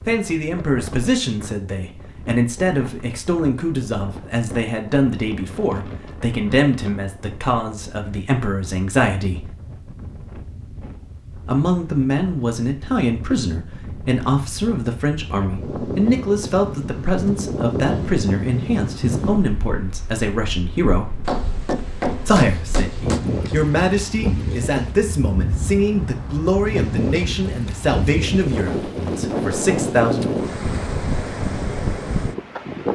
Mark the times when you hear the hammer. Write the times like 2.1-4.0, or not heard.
21.2-23.2.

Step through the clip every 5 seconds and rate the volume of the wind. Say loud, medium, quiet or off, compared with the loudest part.
quiet, quiet, quiet, loud, medium, loud, loud.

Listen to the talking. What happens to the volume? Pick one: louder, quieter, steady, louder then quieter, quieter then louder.
steady.